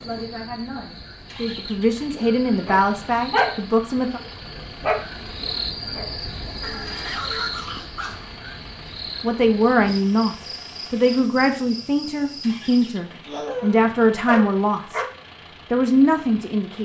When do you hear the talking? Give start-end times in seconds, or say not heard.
0.0-4.2, 9.2-15.0, 15.7-16.7.